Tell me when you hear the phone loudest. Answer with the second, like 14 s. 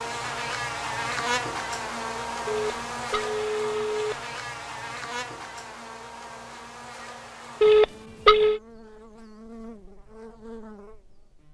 8 s.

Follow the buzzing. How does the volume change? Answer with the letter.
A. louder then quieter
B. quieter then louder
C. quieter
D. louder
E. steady
C.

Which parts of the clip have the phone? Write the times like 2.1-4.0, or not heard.
2.5-4.2, 7.6-8.6.